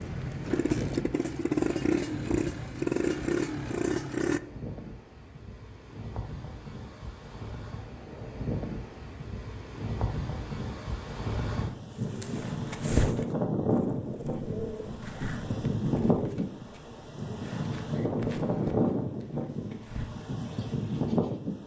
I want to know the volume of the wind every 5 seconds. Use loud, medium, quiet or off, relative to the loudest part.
medium, medium, loud, loud, loud.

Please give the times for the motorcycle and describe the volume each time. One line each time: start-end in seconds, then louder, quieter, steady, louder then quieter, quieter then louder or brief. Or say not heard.
0.0-4.4 steady.